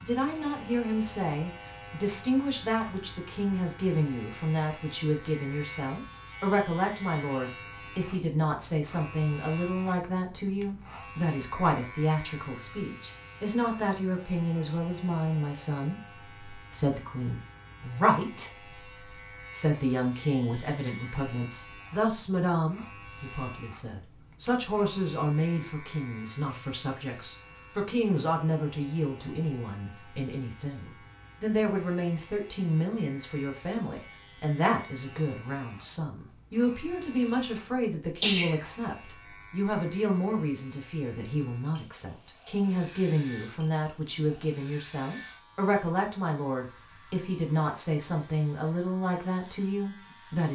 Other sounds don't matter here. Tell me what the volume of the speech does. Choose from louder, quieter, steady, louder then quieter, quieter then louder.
steady.